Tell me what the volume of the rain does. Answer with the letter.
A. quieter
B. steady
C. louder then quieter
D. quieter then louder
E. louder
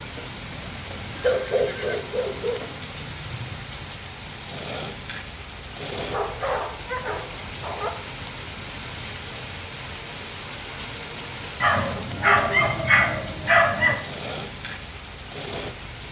B.